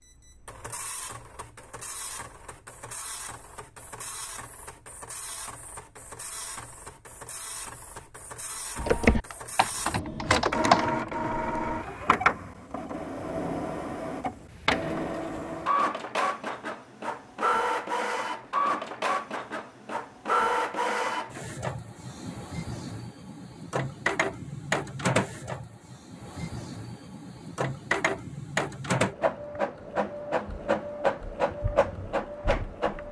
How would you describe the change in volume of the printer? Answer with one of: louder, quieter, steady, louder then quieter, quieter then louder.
louder.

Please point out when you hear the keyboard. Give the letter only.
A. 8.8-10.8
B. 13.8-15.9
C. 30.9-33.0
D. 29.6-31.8
A.